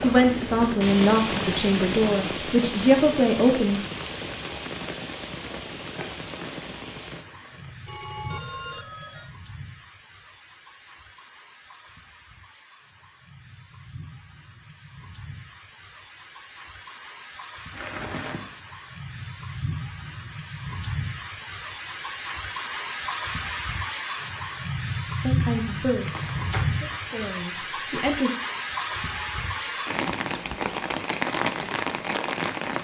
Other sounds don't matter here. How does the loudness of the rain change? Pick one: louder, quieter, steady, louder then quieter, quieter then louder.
quieter then louder.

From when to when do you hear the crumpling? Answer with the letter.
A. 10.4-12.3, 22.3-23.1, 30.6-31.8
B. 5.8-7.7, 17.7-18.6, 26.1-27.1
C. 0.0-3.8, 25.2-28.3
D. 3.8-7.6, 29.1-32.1
B.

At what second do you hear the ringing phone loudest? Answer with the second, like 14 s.
8 s.